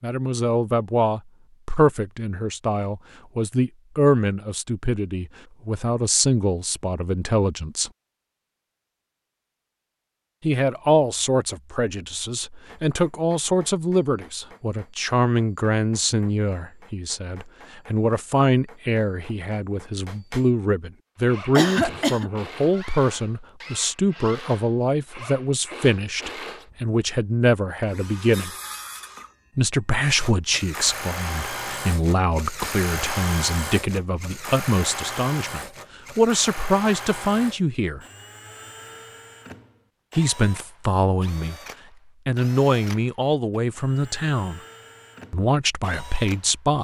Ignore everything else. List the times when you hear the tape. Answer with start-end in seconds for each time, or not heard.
not heard.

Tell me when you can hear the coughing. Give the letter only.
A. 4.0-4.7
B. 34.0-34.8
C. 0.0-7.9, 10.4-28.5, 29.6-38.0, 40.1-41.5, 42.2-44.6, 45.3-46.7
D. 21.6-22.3
D.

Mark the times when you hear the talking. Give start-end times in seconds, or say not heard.
0.0-7.9, 10.4-28.5, 29.6-38.0, 40.1-41.5, 42.2-44.6, 45.3-46.7.